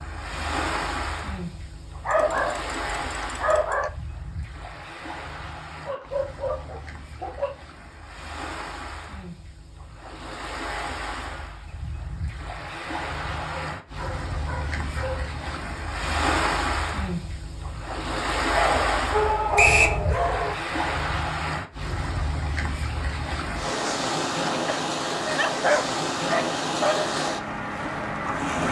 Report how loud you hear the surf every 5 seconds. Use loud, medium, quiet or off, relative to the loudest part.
medium, quiet, medium, loud, loud, loud.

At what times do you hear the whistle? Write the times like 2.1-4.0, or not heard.
19.6-20.0.